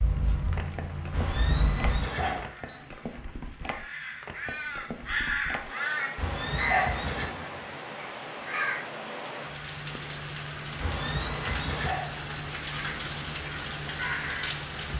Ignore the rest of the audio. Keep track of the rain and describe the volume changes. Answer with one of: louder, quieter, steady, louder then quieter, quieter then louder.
louder.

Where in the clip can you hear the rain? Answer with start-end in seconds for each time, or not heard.
0.0-14.9.